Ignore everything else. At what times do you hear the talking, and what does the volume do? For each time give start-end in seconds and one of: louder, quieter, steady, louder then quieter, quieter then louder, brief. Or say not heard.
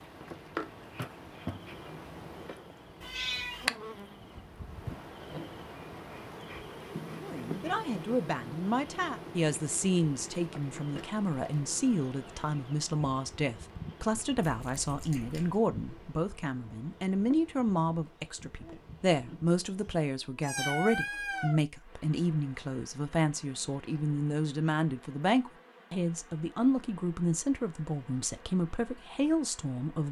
7.2-30.0 steady.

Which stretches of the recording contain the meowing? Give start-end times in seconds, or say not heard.
3.0-3.6, 14.3-15.7, 20.4-21.6.